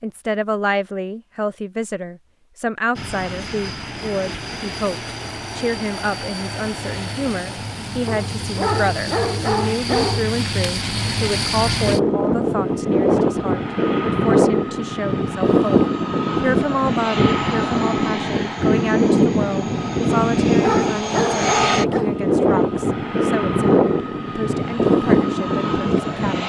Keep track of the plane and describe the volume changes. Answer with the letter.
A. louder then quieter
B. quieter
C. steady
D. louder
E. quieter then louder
D.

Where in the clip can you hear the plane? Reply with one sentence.
The plane can be heard from 3.0 to 26.4 s.